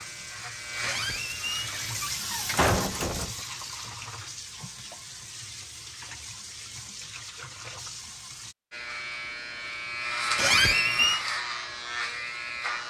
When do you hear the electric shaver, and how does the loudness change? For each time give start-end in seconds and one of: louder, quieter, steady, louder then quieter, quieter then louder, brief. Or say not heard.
0.0-2.0 brief
8.7-12.8 louder then quieter.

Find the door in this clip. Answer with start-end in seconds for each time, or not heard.
0.8-3.4, 10.3-11.2.